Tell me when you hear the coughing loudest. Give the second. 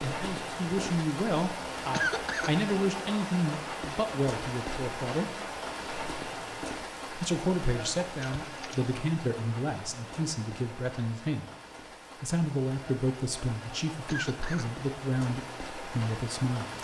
2 s.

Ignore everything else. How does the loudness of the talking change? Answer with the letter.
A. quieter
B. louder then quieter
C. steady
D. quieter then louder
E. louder
C.